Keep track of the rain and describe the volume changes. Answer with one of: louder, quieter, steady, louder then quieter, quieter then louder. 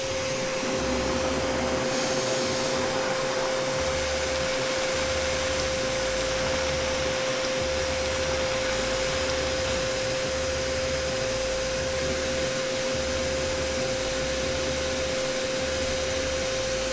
steady.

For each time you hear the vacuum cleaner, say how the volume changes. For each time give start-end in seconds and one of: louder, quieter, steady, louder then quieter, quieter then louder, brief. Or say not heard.
0.0-16.8 steady.